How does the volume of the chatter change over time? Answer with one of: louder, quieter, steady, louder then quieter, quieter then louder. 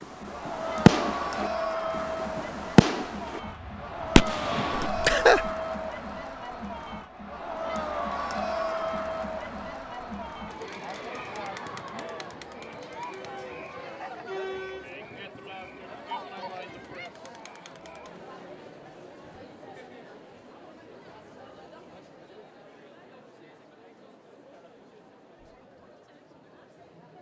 quieter.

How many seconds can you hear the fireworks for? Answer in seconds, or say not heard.
3 s.